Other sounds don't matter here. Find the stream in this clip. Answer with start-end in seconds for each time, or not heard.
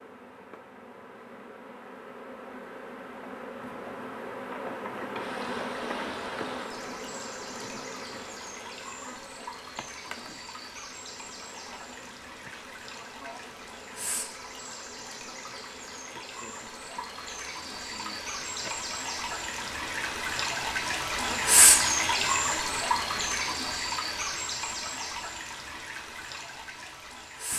5.2-27.5.